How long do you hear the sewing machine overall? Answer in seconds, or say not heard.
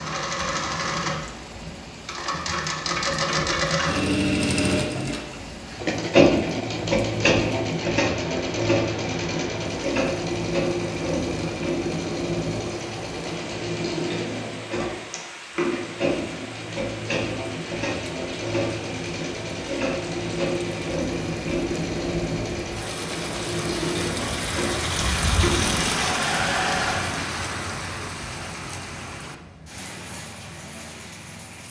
27 s.